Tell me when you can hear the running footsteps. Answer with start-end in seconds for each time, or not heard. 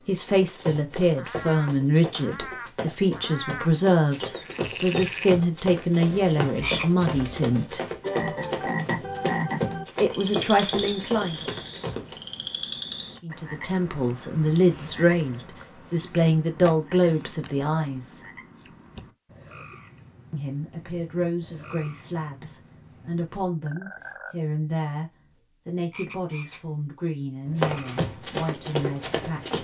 0.2-12.2, 27.6-29.6.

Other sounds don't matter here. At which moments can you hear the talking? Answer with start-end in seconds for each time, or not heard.
0.1-7.8, 10.0-11.4, 13.2-18.2, 20.3-29.6.